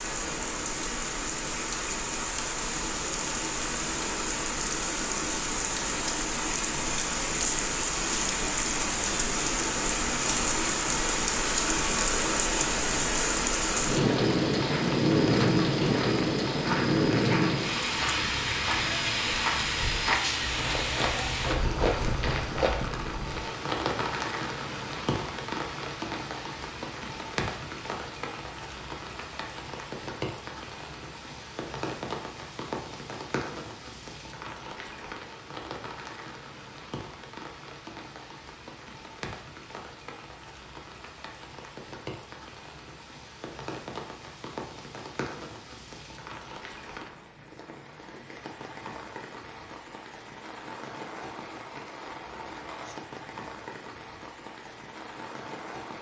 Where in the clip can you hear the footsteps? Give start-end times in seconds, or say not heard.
14.2-22.8.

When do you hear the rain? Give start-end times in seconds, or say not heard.
0.0-55.9.